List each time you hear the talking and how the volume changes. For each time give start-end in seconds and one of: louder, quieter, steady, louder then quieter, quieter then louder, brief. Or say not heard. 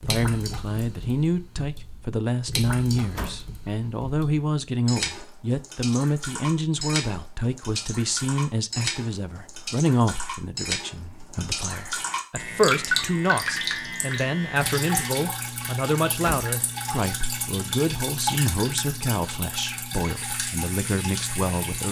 0.0-21.8 steady.